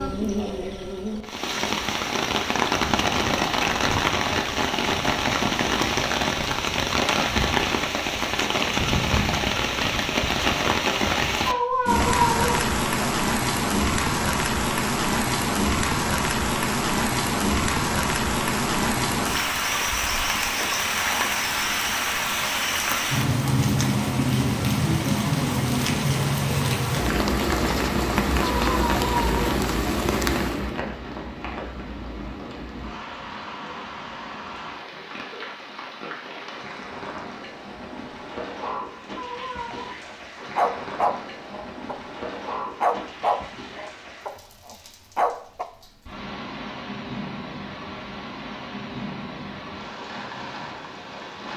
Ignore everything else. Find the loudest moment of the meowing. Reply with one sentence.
The loudest moment of the meowing is at 12 seconds.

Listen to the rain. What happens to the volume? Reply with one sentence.
The volume of the rain goes down.